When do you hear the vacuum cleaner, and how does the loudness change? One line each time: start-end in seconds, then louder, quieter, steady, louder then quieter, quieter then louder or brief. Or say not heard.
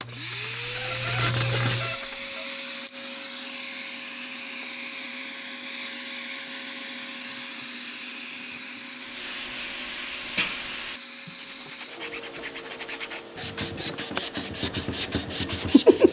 0.0-15.8 quieter.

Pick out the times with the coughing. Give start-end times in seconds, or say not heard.
not heard.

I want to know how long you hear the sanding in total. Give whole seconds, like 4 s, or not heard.
9 s.